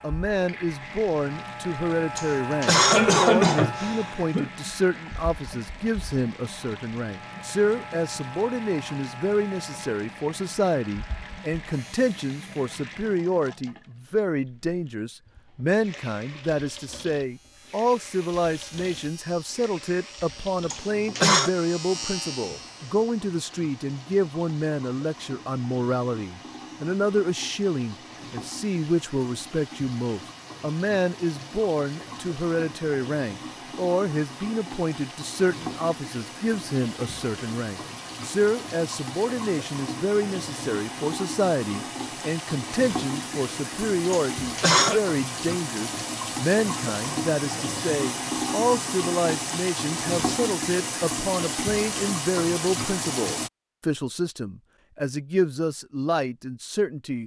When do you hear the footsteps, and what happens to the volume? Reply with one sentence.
You can't hear the footsteps here.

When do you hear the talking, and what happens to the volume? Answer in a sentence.
The talking can be heard from 0.0 to 57.2 s, at a steady volume.